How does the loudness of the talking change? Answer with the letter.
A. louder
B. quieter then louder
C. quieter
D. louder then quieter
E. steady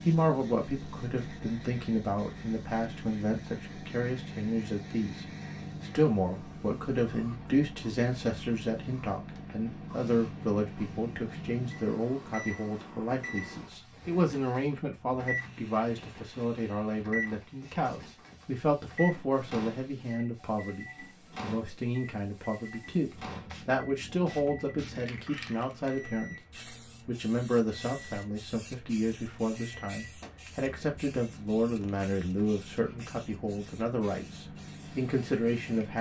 E.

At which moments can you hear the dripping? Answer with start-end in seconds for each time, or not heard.
not heard.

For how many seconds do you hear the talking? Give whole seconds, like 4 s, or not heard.
36 s.